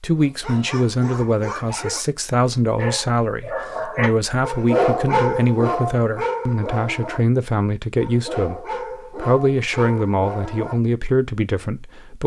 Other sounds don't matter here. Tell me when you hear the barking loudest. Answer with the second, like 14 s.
5 s.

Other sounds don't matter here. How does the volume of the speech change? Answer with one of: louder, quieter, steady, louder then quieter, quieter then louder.
steady.